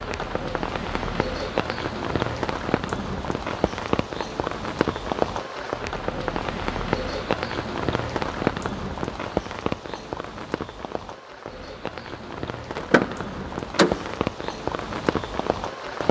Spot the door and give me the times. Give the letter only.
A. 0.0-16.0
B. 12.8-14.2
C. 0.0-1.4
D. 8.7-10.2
B.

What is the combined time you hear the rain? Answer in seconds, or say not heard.
16 s.